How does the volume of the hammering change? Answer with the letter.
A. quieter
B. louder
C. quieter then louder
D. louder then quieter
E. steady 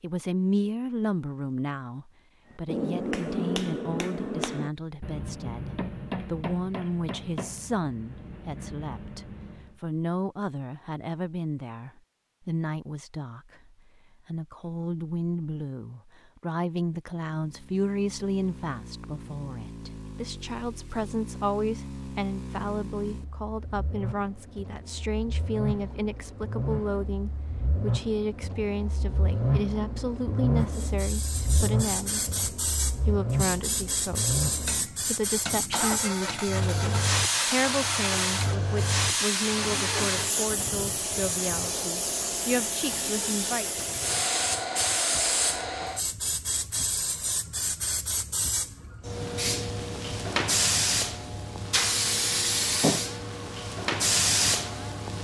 A.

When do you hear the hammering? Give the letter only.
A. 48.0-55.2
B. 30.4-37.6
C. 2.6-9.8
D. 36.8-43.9
C.